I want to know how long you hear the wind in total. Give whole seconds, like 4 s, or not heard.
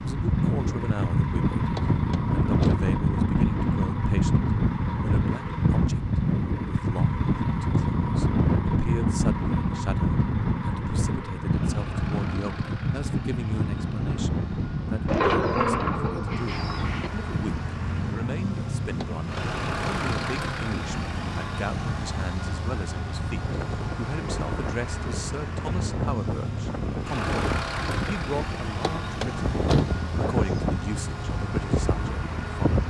33 s.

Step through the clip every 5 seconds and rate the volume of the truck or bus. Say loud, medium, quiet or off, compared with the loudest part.
medium, medium, medium, loud, loud, loud, loud.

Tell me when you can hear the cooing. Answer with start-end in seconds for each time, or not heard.
15.1-17.1.